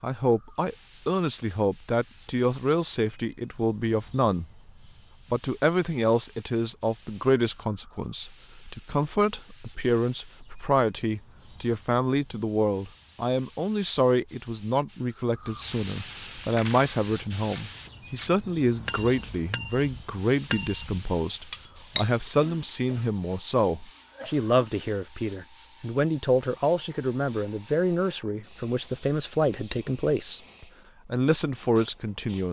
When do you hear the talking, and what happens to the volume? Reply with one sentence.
The talking can be heard from 0.0 to 4.5 s, at a steady volume; and from 5.3 to 32.4 s, at a steady volume.